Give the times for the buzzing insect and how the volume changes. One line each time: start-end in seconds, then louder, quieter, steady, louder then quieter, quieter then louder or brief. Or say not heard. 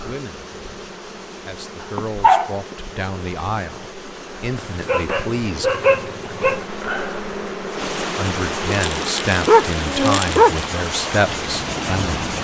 0.0-12.3 louder.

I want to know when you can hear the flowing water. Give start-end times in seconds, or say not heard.
0.0-12.3.